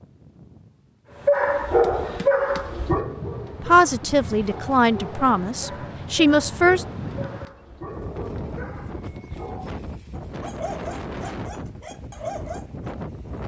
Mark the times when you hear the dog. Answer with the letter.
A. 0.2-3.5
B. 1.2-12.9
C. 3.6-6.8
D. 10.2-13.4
B.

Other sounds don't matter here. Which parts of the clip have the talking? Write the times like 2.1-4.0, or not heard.
3.6-6.8.